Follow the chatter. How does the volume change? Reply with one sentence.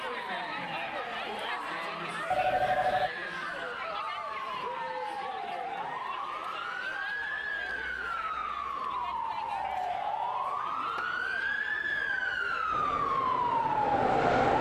The loudness of the chatter goes down.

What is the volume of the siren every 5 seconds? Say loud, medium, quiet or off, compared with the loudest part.
medium, medium, loud.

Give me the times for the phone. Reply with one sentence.
You can hear the phone from 2.3 to 3.1 s and from 9.6 to 11.1 s.